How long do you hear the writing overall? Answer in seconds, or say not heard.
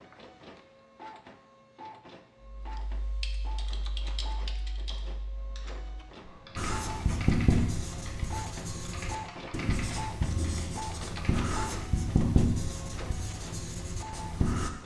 8 s.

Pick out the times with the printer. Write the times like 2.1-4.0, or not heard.
0.0-14.8.